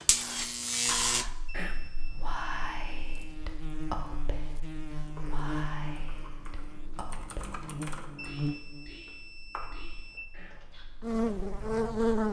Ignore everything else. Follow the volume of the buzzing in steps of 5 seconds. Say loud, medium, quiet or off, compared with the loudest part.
medium, medium, loud.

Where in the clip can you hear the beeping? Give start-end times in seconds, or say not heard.
1.4-3.2, 8.2-10.2.